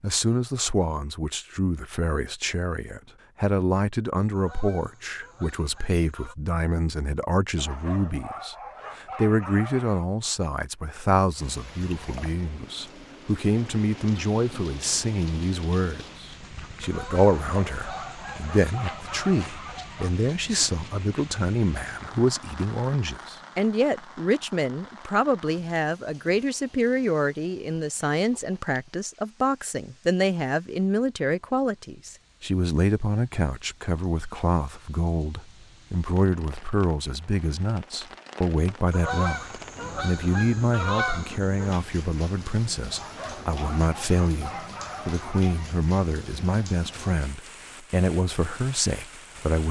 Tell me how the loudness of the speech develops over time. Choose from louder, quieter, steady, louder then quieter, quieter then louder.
steady.